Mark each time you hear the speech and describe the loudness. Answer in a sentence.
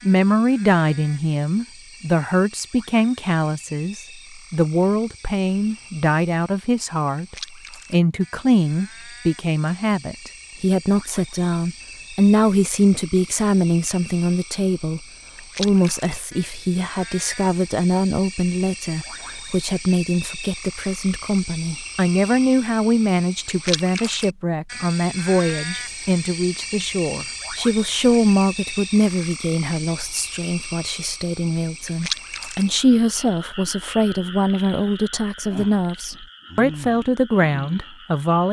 You can hear the speech from 0.0 to 38.4 s, at a steady volume.